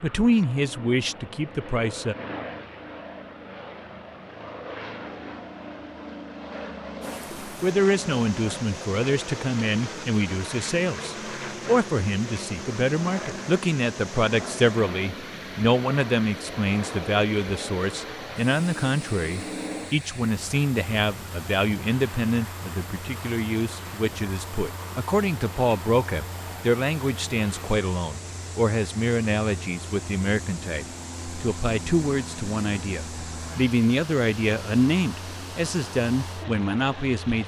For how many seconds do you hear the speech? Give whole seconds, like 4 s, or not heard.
32 s.